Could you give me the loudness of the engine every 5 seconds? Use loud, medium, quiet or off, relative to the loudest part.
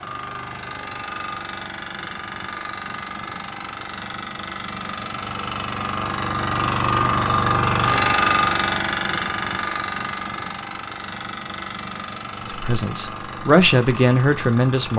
medium, loud, medium.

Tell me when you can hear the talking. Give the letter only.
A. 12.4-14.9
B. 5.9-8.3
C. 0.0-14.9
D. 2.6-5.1
A.